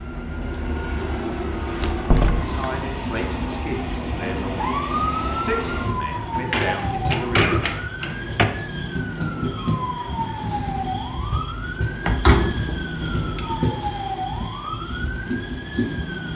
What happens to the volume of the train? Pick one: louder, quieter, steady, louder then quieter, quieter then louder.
steady.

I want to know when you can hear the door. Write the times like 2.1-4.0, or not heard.
1.8-2.6, 6.2-8.4, 12.1-13.5.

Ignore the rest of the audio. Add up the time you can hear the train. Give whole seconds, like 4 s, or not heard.
16 s.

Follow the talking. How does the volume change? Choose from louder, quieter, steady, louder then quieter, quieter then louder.
quieter then louder.